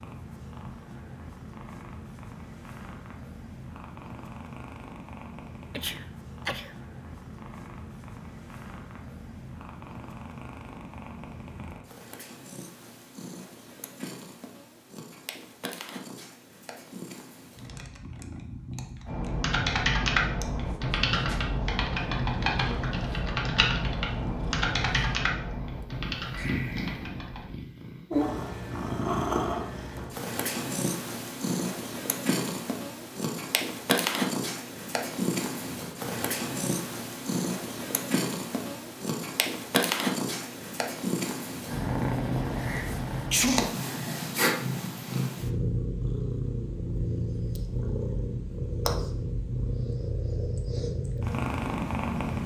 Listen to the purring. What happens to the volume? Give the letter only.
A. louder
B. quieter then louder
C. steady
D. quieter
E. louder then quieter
A.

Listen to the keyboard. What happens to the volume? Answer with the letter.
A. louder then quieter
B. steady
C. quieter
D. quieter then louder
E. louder
C.